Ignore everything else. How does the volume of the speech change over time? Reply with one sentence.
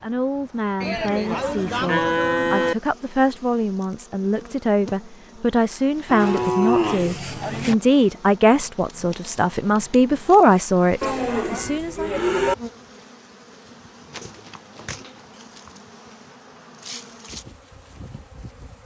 The volume of the speech goes up.